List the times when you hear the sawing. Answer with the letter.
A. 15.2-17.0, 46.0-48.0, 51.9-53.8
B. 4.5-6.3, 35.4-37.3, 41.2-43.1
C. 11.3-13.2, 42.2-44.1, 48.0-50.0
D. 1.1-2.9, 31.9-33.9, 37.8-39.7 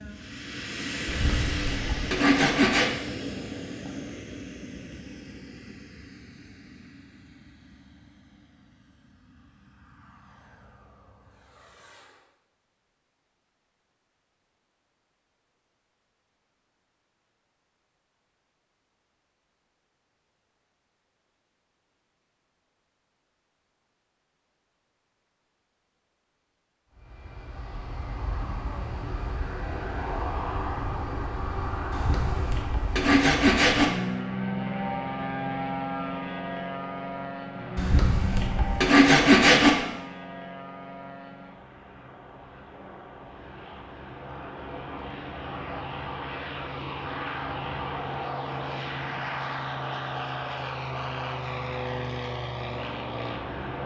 D.